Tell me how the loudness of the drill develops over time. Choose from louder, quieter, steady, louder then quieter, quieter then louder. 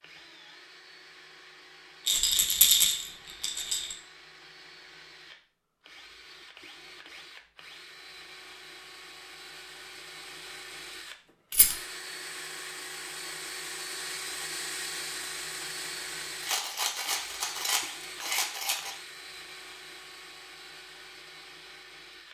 louder then quieter.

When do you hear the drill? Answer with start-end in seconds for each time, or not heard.
0.0-22.2.